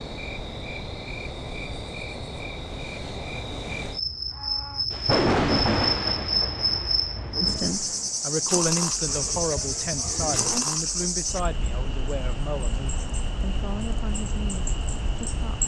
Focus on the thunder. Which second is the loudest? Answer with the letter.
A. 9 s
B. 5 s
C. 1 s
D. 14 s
B.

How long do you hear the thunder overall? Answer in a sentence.
The thunder can be heard for 3 seconds in total.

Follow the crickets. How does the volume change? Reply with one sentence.
The volume of the crickets goes up, then down.